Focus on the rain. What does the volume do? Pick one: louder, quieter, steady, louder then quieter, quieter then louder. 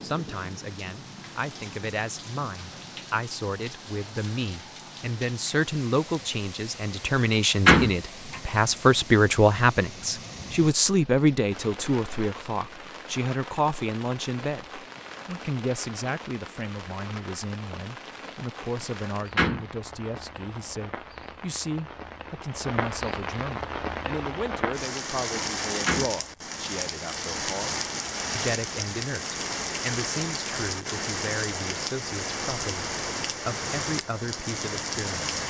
louder.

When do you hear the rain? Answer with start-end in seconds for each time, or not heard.
0.0-35.4.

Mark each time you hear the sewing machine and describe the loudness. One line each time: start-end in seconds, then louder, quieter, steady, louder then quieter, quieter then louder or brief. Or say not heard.
not heard.